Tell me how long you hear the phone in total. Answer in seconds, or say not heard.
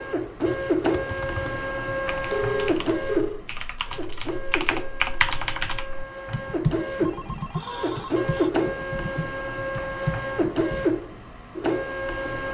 3 s.